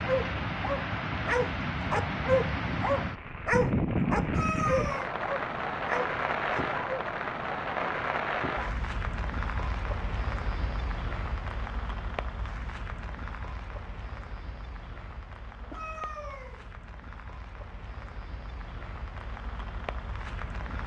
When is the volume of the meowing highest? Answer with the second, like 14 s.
5 s.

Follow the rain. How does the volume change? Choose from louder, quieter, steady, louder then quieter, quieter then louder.
quieter.